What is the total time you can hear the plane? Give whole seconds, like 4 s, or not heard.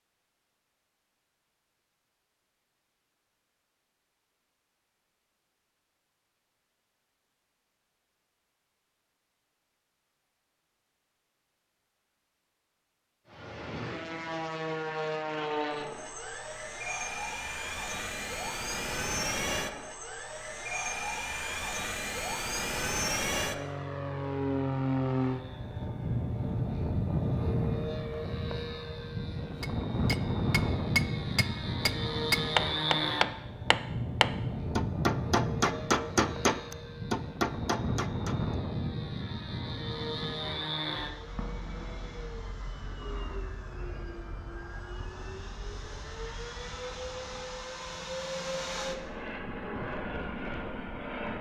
38 s.